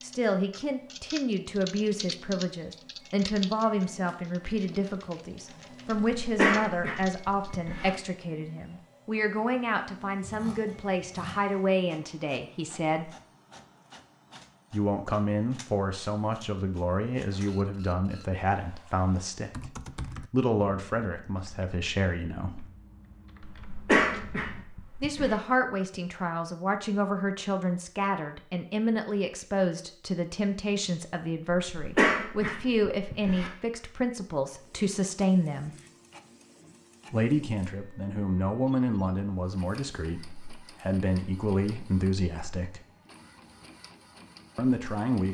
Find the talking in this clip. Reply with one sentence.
You can hear the talking from 0.0 to 13.1 s, from 14.7 to 19.7 s, from 20.3 to 22.7 s, from 25.0 to 35.8 s, from 37.1 to 42.8 s and from 44.5 to 45.2 s.